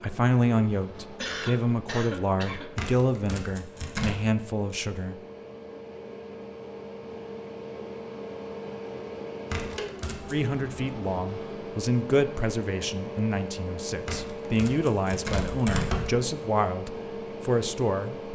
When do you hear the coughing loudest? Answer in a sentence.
The loudest moment of the coughing is at 1 second.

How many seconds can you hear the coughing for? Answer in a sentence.
You can hear the coughing for 2 seconds altogether.